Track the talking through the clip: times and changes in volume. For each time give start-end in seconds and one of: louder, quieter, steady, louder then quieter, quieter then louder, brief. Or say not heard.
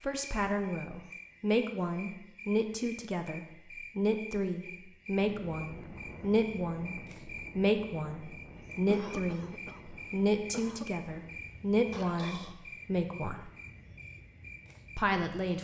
0.0-13.4 steady
14.9-15.5 brief.